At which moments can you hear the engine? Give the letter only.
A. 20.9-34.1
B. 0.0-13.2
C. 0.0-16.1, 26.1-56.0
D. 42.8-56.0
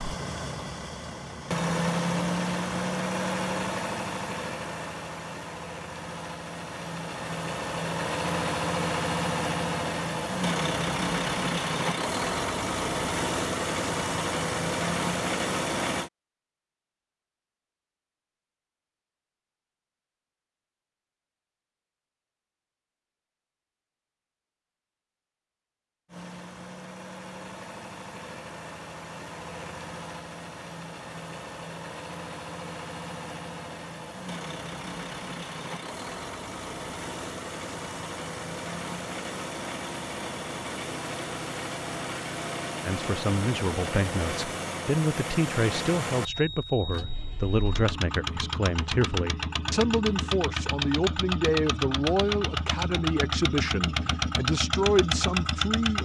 C.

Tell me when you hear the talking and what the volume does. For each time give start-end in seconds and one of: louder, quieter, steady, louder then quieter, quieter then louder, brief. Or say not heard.
42.8-56.0 steady.